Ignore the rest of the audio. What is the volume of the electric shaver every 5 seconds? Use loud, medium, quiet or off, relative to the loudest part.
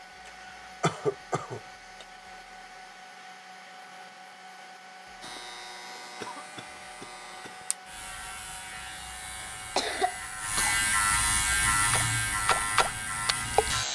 off, quiet, loud.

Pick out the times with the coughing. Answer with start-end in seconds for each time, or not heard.
0.2-2.0, 5.8-7.6, 9.4-10.8.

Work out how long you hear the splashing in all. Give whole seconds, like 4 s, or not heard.
2 s.